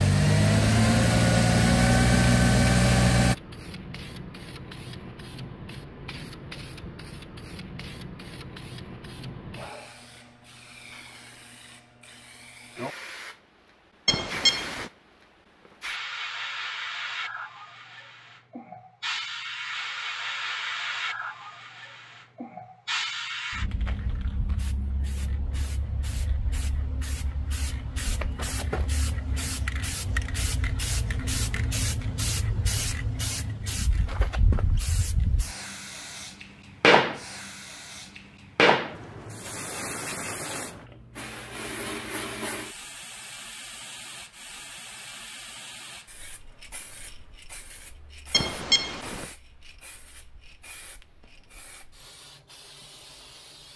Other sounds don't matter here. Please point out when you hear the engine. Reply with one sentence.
The engine can be heard from 0.0 to 3.4 s.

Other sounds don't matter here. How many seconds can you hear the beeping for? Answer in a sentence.
You can hear the beeping for 2 seconds altogether.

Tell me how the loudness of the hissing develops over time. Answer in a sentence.
The loudness of the hissing goes up, then down.